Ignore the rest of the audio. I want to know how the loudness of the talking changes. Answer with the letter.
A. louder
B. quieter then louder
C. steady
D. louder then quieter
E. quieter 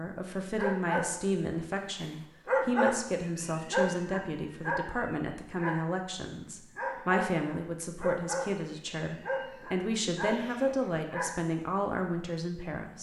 C.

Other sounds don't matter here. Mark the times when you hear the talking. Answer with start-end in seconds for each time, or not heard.
0.0-12.9.